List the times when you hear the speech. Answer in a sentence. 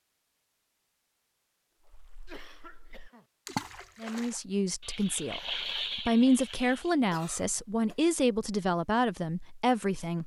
You can hear the speech from 4.0 to 10.2 s.